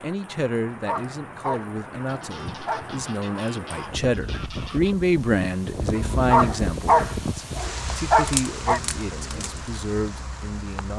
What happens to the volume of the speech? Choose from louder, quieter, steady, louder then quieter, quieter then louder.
louder then quieter.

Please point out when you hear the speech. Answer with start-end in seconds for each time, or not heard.
0.0-10.9.